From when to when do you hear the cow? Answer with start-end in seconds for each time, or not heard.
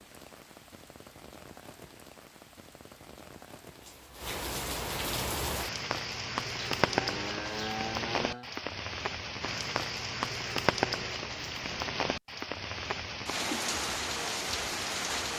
6.7-8.5.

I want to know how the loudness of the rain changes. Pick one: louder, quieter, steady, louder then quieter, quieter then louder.
louder.